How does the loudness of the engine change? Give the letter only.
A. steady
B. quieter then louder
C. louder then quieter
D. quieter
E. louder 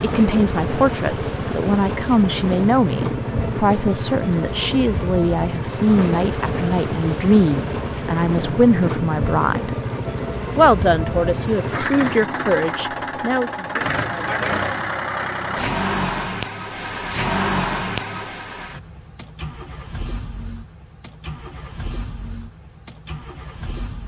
D.